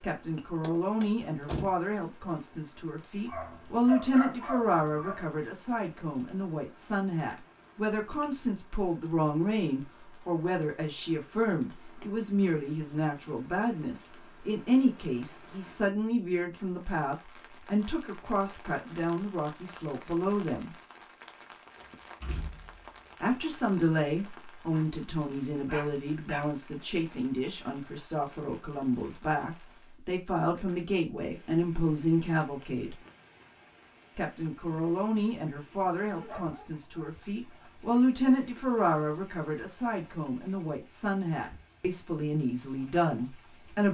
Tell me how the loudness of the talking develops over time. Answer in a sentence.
The loudness of the talking stays about the same.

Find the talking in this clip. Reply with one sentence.
The talking can be heard from 0.0 to 20.7 s, from 23.2 to 33.0 s and from 34.1 to 43.8 s.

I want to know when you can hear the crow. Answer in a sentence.
The crow can't be heard in this clip.